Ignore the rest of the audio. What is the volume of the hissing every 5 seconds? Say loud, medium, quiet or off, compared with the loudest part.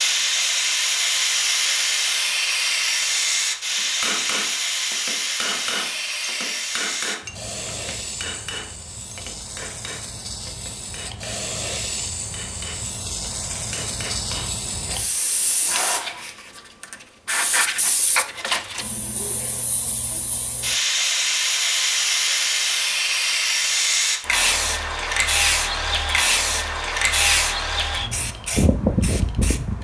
loud, medium, medium, medium, loud, loud.